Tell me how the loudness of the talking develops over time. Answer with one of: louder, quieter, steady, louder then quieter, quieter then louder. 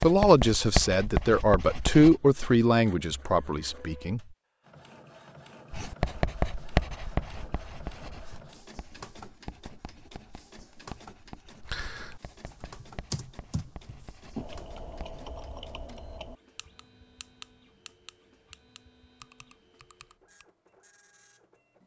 louder then quieter.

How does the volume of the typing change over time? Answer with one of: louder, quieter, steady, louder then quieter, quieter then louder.
quieter.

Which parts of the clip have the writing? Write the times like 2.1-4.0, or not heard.
0.0-2.1, 5.7-15.3.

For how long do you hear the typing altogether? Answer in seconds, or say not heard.
9 s.